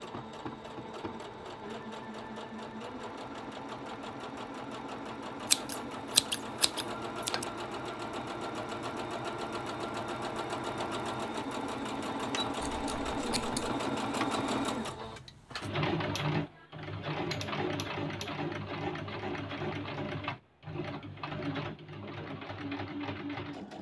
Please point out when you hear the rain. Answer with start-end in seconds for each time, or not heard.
not heard.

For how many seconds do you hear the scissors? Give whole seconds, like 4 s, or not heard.
3 s.